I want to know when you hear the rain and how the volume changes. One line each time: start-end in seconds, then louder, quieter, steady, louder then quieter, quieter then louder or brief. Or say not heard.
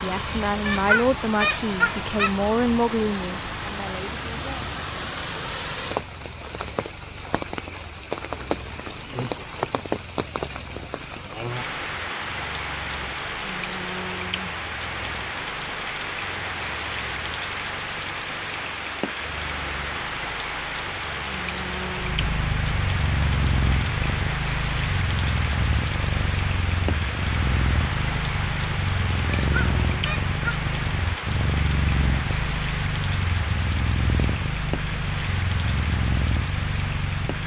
0.0-37.4 steady.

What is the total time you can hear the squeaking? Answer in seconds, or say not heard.
3 s.